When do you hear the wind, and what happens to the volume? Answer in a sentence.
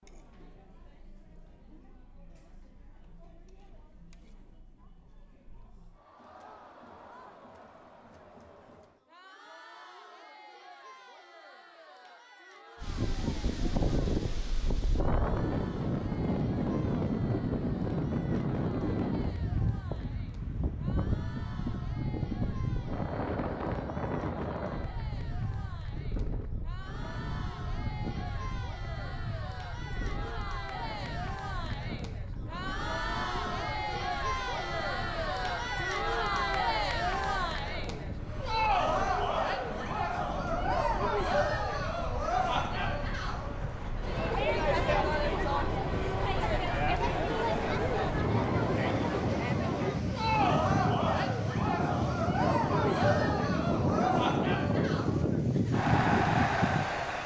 You can hear the wind from 12.8 to 57.2 s, getting quieter then louder.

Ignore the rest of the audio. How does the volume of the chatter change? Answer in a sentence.
The loudness of the chatter goes up.